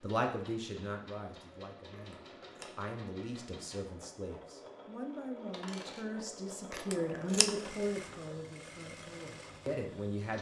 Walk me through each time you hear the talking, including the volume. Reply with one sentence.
The talking can be heard from 0.0 to 10.3 s, getting louder then quieter.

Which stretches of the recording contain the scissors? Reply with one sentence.
You can hear the scissors from 1.9 to 2.9 s and from 6.7 to 7.5 s.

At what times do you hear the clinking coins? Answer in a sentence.
The clinking coins can be heard from 5.5 to 6.0 s.